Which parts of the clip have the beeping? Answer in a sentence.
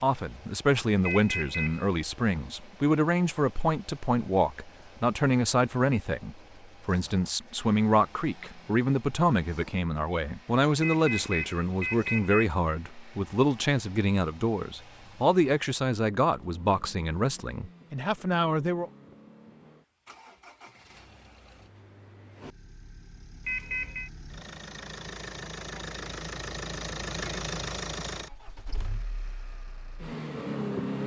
The beeping can be heard from 1.1 to 1.9 s, from 10.8 to 12.5 s and from 23.4 to 24.1 s.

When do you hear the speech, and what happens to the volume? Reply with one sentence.
You can hear the speech from 0.0 to 18.9 s, at a steady volume.